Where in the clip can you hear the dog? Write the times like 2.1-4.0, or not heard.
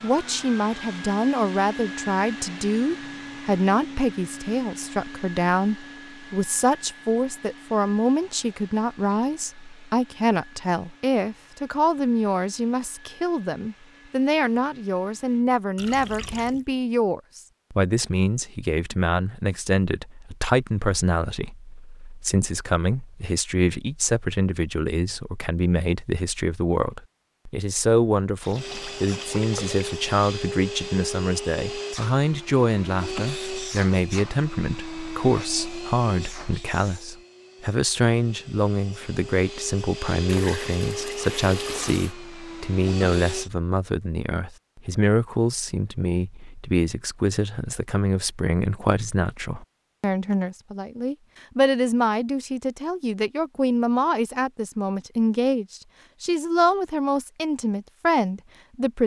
not heard.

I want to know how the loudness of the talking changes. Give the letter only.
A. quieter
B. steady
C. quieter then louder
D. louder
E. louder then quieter
B.